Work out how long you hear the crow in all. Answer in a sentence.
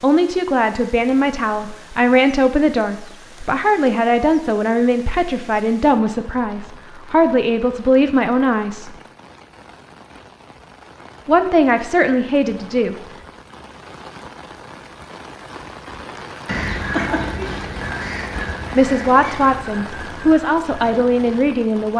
The crow can be heard for 5 seconds in total.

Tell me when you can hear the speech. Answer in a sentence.
The speech can be heard from 0.0 to 8.9 s, from 11.2 to 12.9 s and from 18.8 to 21.9 s.